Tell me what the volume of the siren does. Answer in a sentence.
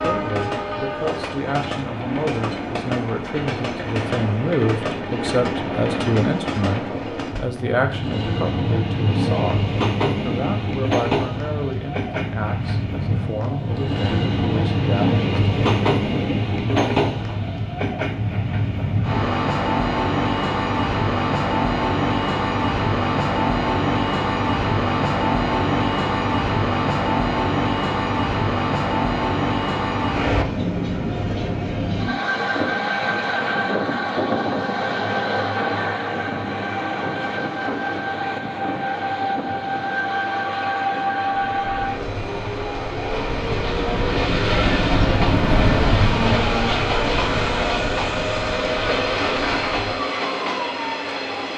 The loudness of the siren goes up, then down.